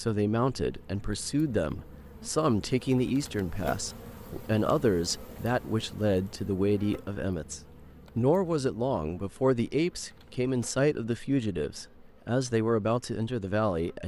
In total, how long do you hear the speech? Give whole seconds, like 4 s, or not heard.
14 s.